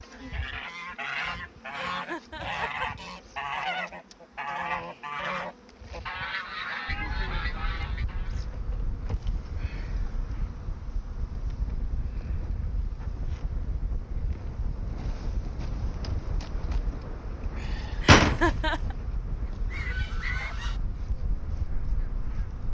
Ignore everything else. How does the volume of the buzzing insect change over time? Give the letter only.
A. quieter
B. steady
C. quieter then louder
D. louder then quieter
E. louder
E.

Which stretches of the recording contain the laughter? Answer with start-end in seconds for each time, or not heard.
1.7-2.9, 18.0-18.9.